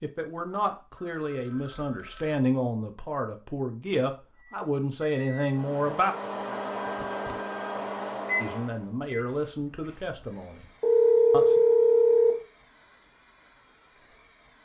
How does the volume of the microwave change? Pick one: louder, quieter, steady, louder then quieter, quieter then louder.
louder.